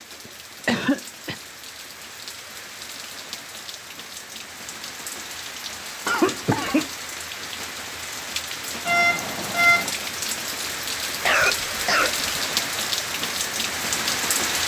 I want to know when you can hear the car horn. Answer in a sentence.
The car horn can be heard from 8.8 to 9.9 s.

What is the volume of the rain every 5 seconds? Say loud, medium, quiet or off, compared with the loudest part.
quiet, medium, loud.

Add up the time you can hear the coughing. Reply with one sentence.
The coughing can be heard for 3 seconds in total.